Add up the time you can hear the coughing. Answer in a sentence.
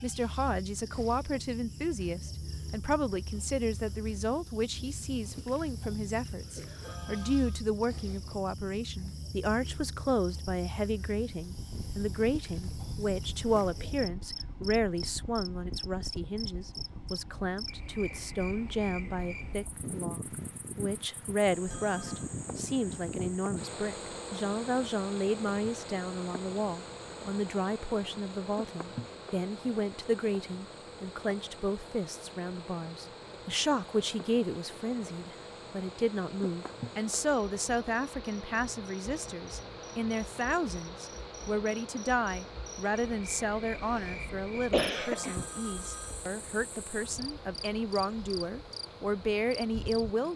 You can hear the coughing for 2 seconds altogether.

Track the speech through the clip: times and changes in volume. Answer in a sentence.
The speech can be heard from 0.0 to 50.3 s, at a steady volume.